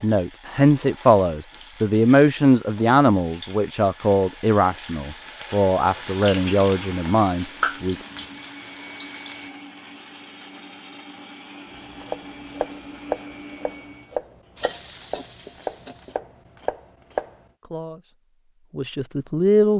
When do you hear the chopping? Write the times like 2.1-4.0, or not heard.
11.8-17.4.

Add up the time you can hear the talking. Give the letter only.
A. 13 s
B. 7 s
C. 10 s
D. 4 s
C.